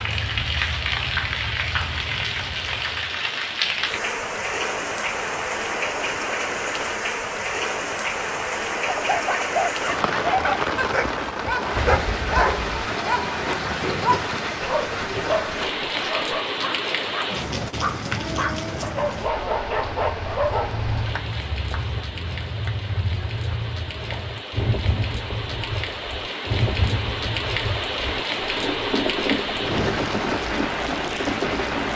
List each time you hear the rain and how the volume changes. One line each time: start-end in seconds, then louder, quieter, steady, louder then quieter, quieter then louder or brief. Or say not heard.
0.0-31.9 quieter then louder.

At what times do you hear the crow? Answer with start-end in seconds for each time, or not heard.
not heard.